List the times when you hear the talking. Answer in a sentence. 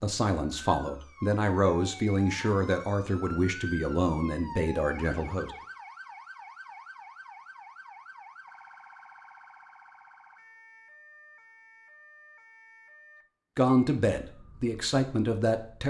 The talking can be heard from 0.0 to 5.5 s and from 13.6 to 15.8 s.